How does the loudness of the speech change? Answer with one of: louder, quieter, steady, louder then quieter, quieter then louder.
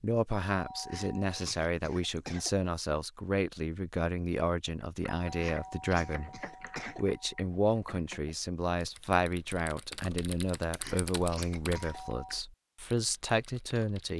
steady.